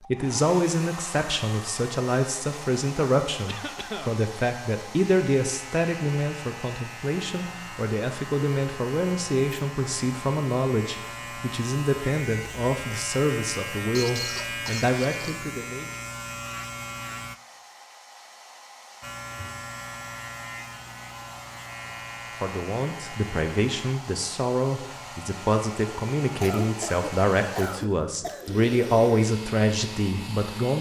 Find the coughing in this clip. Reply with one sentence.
The coughing can be heard from 3.5 to 4.2 s, from 13.9 to 15.4 s and from 26.4 to 28.6 s.